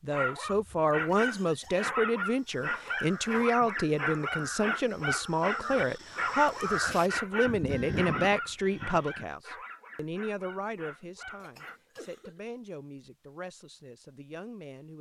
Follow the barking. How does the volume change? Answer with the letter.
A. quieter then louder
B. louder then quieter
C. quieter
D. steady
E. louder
C.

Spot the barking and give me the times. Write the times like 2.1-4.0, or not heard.
0.1-11.8.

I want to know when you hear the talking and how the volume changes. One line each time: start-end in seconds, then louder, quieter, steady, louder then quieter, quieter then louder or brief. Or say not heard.
0.0-14.9 quieter.